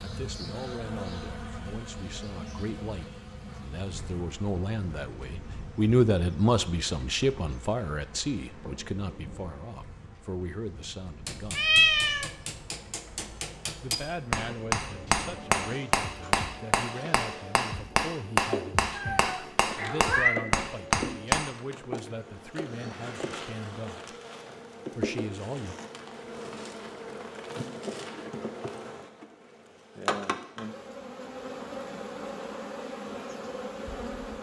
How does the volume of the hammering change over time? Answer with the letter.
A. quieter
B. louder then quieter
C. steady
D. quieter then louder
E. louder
E.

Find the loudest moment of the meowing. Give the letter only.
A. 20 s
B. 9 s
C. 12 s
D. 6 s
C.